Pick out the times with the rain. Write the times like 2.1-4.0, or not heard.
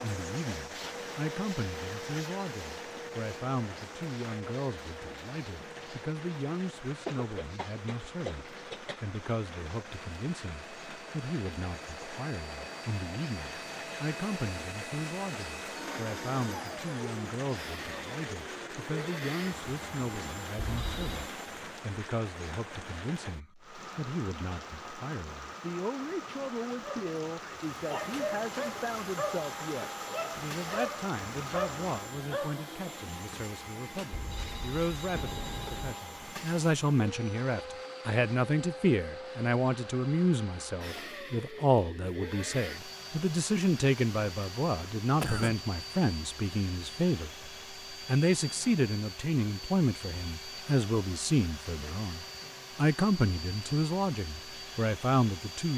0.0-32.2.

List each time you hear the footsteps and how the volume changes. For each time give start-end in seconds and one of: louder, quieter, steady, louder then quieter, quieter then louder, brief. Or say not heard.
not heard.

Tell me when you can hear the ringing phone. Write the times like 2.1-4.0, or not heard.
20.6-21.2, 34.1-36.0.